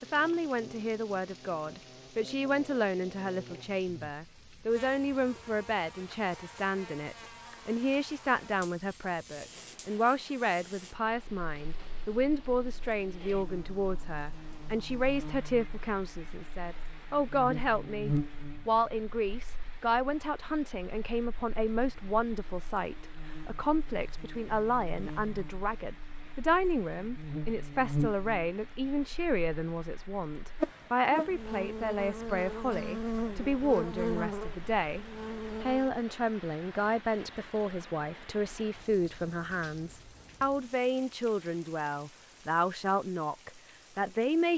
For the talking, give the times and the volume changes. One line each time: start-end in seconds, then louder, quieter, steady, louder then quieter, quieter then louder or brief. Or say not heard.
0.0-44.5 steady.